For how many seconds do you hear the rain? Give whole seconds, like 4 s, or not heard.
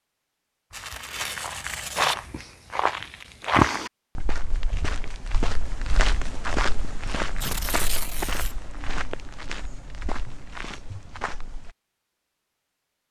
not heard.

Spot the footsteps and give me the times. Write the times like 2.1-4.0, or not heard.
0.7-11.8.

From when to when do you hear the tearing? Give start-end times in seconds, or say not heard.
0.7-2.1, 7.4-8.6.